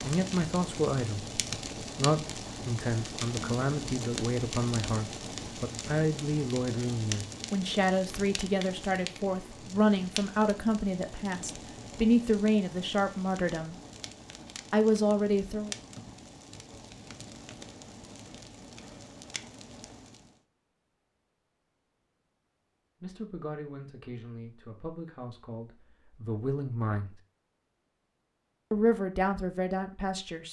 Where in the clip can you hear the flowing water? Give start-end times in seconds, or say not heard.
not heard.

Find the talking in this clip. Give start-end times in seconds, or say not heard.
0.0-13.8, 14.7-15.7, 23.0-27.1, 28.7-30.4.